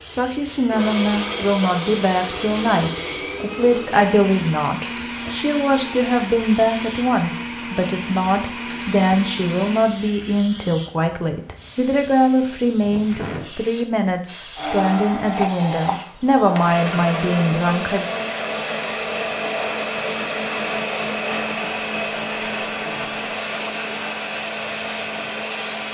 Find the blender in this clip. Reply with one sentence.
You can hear the blender from 0.0 to 9.8 s and from 14.6 to 25.8 s.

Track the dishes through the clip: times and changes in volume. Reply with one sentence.
You can't hear the dishes here.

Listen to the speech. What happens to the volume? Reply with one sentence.
The loudness of the speech stays about the same.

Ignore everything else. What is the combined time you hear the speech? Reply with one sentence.
The speech can be heard for 18 seconds in total.